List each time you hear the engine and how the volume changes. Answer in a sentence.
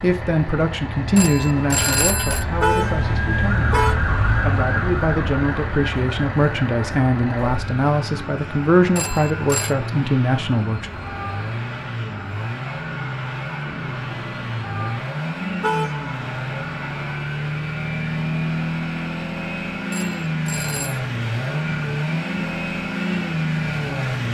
The engine can be heard from 0.0 to 24.2 s, getting louder.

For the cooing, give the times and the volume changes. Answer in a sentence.
You can't hear the cooing here.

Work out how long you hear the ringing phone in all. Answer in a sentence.
The ringing phone can be heard for 3 seconds in total.